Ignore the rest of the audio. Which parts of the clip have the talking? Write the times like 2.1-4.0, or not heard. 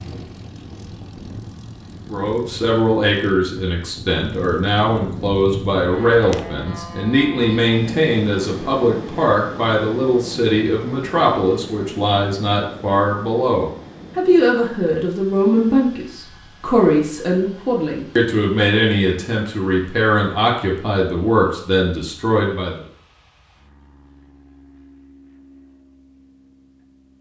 2.1-22.9.